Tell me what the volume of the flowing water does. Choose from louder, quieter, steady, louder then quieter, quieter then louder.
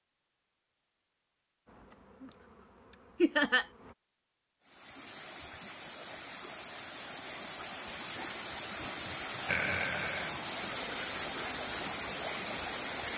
louder.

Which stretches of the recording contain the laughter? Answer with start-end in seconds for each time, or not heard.
3.2-3.6, 9.4-10.3.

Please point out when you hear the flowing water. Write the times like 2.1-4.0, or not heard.
4.6-13.1.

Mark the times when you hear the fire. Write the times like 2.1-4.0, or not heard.
not heard.